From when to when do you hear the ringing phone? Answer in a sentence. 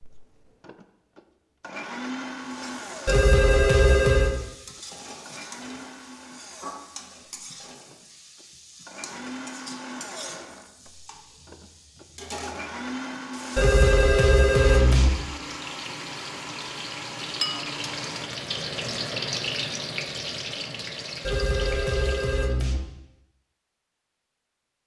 You can hear the ringing phone from 3.0 to 4.4 s, from 13.6 to 15.1 s and from 21.2 to 22.8 s.